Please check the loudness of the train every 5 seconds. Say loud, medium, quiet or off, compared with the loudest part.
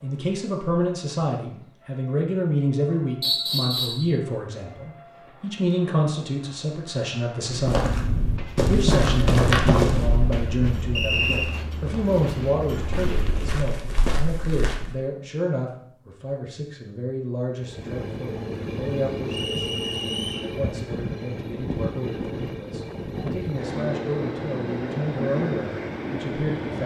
quiet, quiet, medium, loud, loud, loud.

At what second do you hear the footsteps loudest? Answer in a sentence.
The volume of the footsteps peaks at 10 seconds.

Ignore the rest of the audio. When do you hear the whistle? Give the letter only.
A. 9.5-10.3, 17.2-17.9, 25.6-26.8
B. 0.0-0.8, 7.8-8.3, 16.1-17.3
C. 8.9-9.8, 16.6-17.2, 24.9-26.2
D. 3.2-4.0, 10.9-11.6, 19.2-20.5
D.